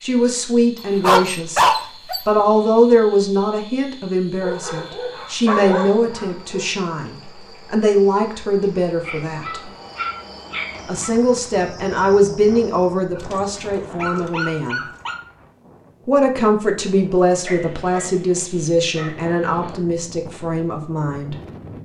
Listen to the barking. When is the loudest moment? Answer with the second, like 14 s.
2 s.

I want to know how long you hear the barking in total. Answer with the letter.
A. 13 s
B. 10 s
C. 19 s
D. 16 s
B.